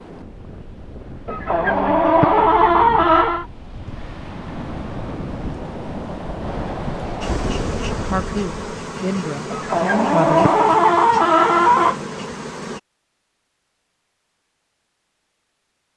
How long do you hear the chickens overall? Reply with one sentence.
You can hear the chickens for 5 seconds altogether.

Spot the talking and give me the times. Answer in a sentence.
You can hear the talking from 8.0 to 10.5 s.